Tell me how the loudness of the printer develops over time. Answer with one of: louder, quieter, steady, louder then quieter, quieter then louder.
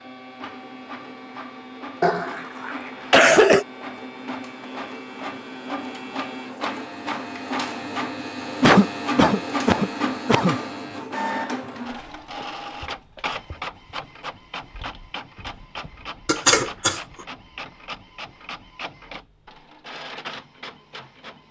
louder then quieter.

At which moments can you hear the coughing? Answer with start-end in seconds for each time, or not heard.
2.0-3.6, 8.6-10.6, 16.2-17.0.